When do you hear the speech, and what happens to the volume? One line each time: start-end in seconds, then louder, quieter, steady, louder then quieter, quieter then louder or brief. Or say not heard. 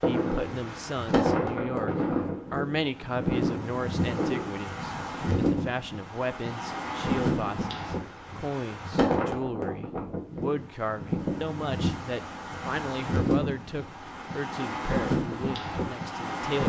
0.0-16.6 steady.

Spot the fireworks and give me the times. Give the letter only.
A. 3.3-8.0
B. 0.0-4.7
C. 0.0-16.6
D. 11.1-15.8
B.